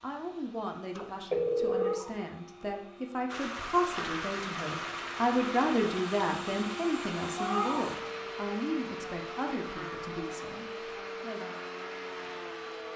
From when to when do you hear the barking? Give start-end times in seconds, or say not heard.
not heard.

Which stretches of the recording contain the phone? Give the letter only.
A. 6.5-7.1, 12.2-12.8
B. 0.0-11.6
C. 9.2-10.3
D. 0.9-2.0
D.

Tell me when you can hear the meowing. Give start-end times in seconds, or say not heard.
1.6-2.2, 7.3-7.9.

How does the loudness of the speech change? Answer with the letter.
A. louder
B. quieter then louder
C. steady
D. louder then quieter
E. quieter
D.